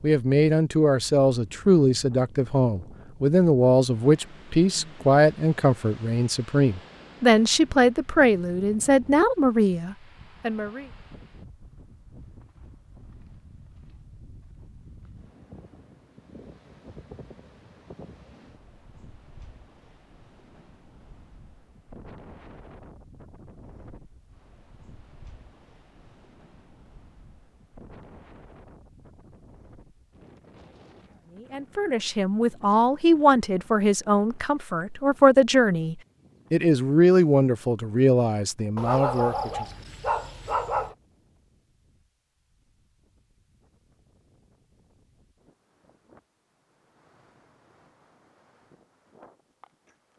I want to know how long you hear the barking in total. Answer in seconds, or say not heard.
2 s.